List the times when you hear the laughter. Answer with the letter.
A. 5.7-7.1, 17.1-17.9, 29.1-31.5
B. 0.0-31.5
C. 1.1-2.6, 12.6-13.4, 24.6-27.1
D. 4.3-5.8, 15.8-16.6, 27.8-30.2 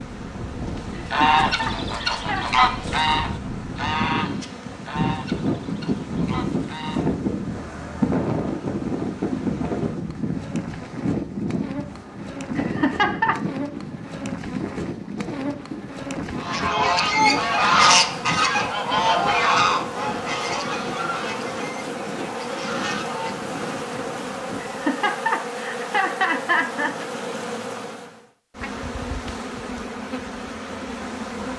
C.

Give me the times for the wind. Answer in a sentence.
The wind can be heard from 0.0 to 24.8 s.